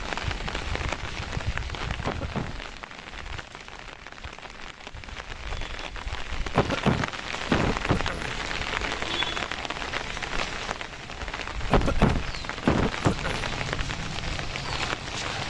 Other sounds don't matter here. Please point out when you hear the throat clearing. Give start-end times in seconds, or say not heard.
2.0-2.5, 6.5-8.3, 11.7-13.5.